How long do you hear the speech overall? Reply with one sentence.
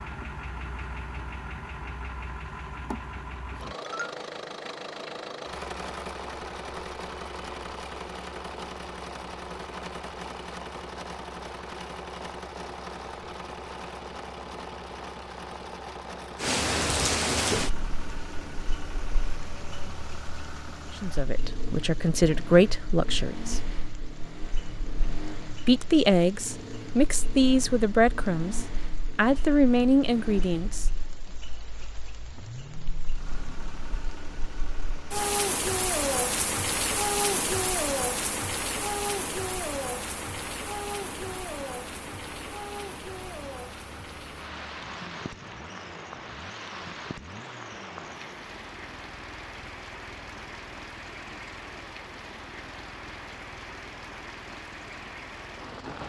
The speech can be heard for 8 seconds in total.